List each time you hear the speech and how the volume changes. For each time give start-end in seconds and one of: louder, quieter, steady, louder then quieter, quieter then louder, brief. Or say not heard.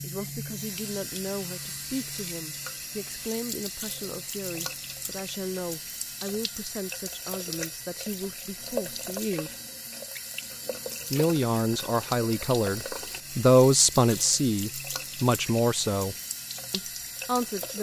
0.0-9.6 steady
11.1-17.7 louder then quieter.